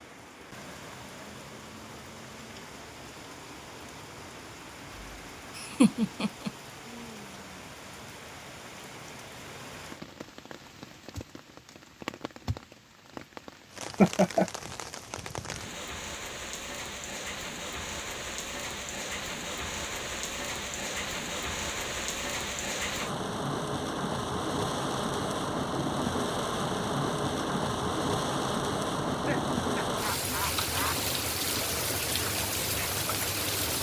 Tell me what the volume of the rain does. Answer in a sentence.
The volume of the rain goes up.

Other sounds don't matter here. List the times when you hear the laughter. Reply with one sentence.
You can hear the laughter from 5.5 to 6.5 s, from 14.0 to 14.5 s and from 29.1 to 30.9 s.